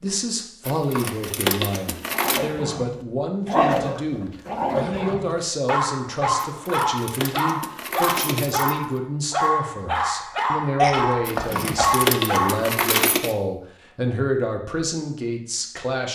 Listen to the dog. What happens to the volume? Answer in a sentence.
The volume of the dog stays about the same.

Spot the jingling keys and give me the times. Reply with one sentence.
The jingling keys can be heard from 0.7 to 2.4 s, from 6.3 to 8.7 s and from 11.2 to 13.3 s.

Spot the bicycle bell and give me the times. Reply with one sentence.
The bicycle bell can't be heard in this clip.